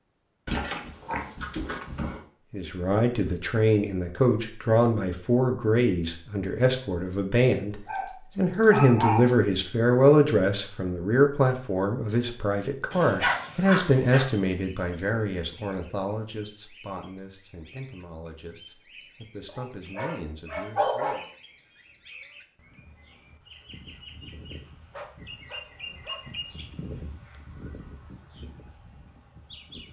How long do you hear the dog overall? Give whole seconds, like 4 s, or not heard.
8 s.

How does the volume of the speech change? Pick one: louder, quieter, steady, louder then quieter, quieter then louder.
quieter.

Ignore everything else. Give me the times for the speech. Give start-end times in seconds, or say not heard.
2.5-21.2.